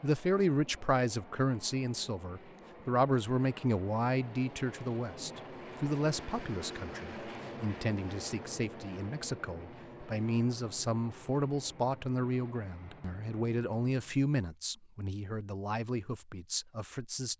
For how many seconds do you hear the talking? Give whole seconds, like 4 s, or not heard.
17 s.